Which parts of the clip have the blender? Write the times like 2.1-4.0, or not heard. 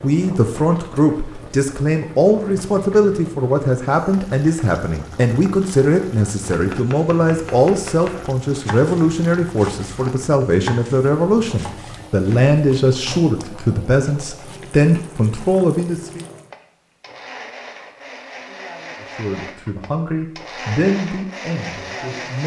16.5-22.4.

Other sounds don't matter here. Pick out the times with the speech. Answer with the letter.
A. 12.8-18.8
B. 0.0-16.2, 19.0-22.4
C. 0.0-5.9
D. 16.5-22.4
B.